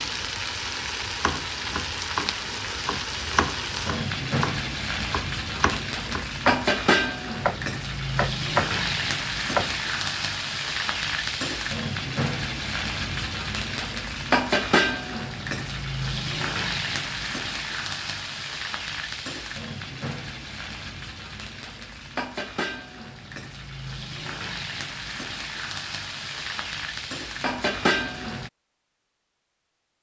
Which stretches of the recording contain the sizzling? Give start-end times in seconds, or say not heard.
0.0-28.5.